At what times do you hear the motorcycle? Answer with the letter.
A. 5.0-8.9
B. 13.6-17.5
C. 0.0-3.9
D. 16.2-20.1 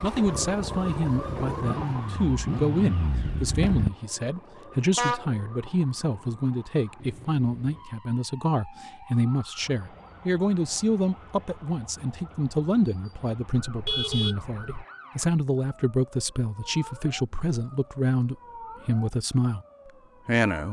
C.